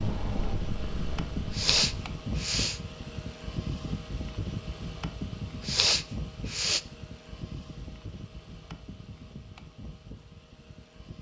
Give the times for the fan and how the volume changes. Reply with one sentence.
You can hear the fan from 0.0 to 11.1 s, getting quieter.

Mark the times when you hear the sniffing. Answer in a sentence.
You can hear the sniffing from 1.5 to 2.8 s and from 5.6 to 6.8 s.